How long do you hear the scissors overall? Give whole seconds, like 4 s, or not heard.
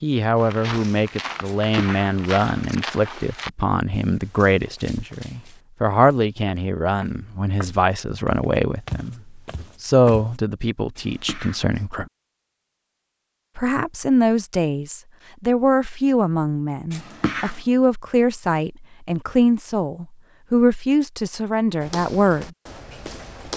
3 s.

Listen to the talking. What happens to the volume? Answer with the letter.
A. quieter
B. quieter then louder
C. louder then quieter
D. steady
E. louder
D.